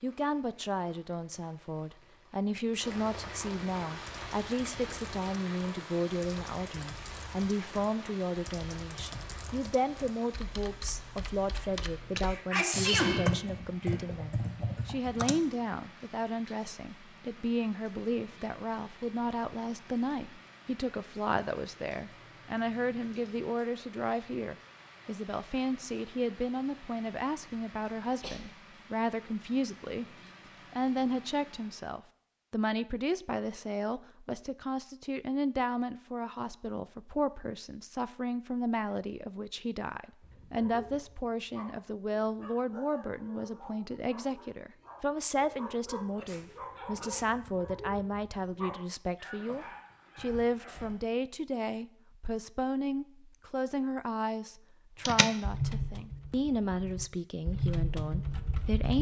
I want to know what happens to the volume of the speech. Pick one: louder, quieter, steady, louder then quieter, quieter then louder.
steady.